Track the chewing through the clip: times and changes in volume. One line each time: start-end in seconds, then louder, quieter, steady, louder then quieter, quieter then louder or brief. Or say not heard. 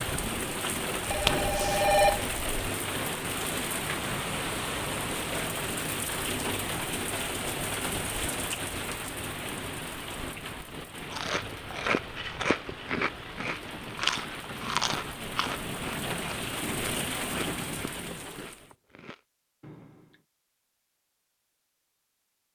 11.0-20.2 quieter.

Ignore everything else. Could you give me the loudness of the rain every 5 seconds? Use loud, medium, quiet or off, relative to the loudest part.
loud, loud, medium, loud, off.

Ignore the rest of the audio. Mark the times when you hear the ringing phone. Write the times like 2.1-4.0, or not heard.
1.1-2.7.